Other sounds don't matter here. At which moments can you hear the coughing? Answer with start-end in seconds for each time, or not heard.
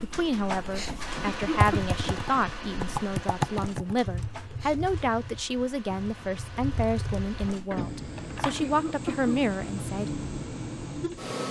1.2-1.9, 8.6-9.4.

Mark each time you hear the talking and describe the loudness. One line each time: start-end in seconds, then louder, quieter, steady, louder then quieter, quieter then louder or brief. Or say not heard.
0.0-10.2 steady.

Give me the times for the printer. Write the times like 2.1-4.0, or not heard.
0.0-11.4.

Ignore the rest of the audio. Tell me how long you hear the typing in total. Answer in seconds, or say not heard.
7 s.